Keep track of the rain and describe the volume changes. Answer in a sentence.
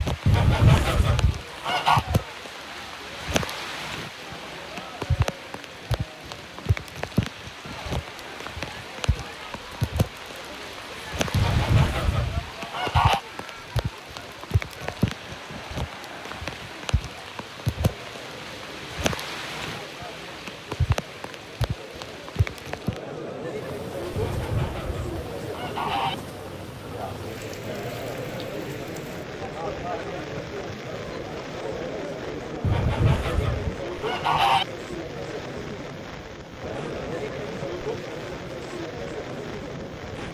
The volume of the rain goes down.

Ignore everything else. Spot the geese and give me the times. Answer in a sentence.
You can hear the geese from 0.2 to 2.0 s, from 11.3 to 13.2 s, from 24.1 to 26.1 s and from 32.6 to 34.6 s.